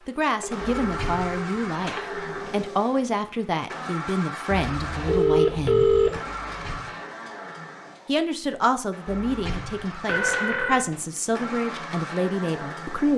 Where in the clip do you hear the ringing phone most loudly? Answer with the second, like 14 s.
6 s.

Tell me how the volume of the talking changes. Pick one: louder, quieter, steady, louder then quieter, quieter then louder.
steady.